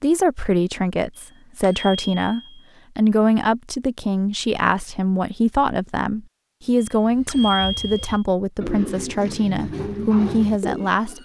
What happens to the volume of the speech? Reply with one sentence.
The loudness of the speech stays about the same.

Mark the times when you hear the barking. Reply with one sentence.
The barking can't be heard in this clip.